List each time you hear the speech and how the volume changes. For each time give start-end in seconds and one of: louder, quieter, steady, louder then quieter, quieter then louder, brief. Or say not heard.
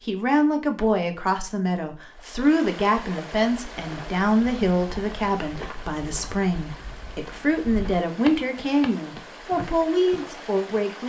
0.1-11.0 steady.